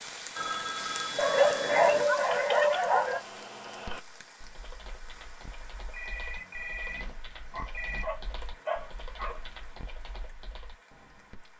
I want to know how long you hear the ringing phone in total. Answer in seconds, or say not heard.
4 s.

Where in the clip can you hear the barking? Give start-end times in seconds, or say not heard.
1.1-3.2, 7.5-9.4.